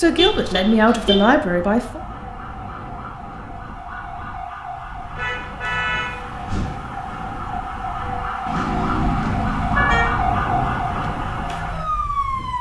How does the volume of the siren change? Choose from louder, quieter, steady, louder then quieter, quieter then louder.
louder.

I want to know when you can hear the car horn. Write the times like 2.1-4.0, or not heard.
0.1-1.2, 5.2-6.8, 8.4-10.1.